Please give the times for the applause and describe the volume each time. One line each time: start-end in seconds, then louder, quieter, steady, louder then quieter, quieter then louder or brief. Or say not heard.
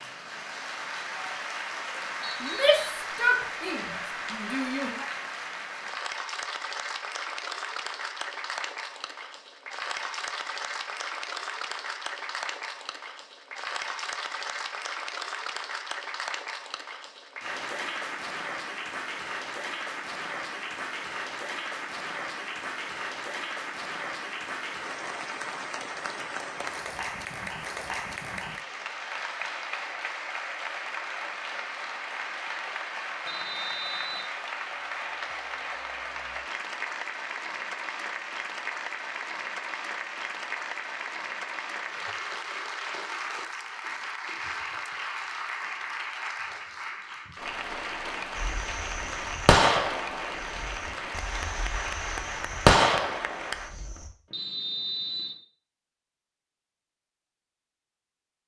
0.0-53.8 steady.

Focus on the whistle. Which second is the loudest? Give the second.
55 s.